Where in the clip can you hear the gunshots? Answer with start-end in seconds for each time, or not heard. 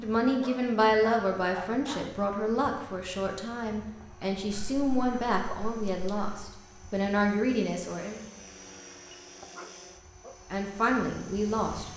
not heard.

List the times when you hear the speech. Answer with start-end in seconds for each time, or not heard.
0.0-8.2, 10.5-11.9.